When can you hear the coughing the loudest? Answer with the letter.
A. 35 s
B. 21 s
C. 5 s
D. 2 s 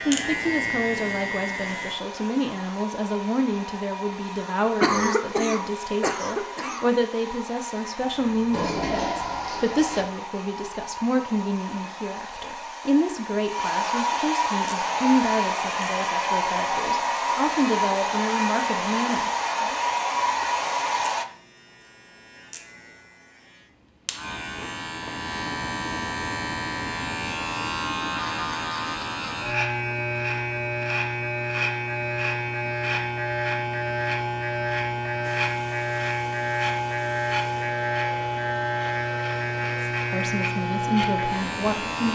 C.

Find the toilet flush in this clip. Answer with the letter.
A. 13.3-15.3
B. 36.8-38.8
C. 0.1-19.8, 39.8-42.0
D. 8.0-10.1
D.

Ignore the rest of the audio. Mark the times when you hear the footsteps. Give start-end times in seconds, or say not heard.
not heard.